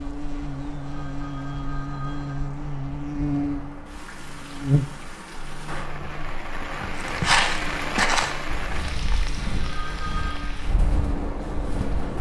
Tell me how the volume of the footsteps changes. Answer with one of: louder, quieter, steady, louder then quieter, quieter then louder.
quieter.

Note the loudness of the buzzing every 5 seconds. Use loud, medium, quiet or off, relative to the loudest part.
loud, quiet, medium.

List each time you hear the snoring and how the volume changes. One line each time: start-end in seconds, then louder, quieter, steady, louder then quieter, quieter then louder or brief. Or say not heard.
not heard.